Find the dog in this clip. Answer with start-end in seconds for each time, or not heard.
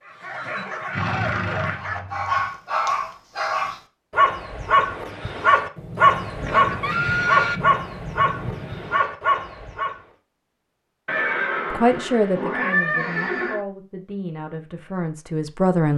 0.1-10.0.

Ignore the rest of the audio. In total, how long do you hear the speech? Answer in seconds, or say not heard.
4 s.